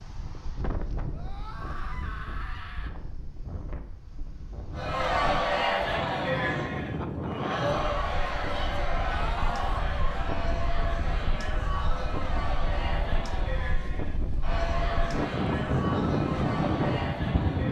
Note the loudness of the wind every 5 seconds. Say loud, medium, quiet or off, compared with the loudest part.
quiet, medium, medium, loud.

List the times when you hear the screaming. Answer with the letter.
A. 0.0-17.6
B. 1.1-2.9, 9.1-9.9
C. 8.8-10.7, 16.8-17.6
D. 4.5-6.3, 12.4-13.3
B.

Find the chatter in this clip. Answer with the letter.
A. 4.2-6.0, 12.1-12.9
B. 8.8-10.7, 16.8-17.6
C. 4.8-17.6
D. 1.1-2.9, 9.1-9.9
C.